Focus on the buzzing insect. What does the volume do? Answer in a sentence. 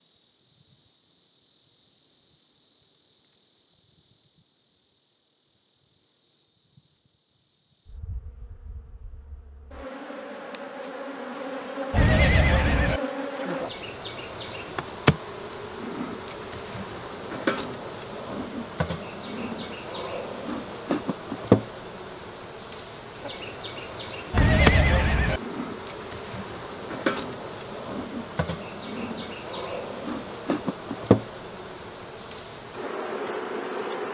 The loudness of the buzzing insect goes up.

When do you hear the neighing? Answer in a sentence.
You can hear the neighing from 11.9 to 13.0 s and from 24.3 to 25.4 s.